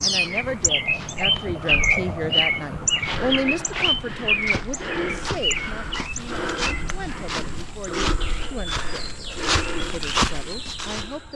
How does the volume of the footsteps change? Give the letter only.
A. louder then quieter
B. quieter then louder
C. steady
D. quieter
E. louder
E.